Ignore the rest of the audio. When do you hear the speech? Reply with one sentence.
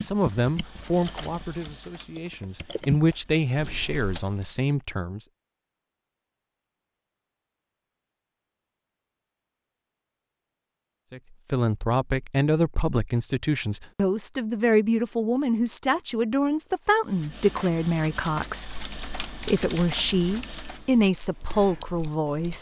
You can hear the speech from 0.0 to 5.2 s and from 11.1 to 22.5 s.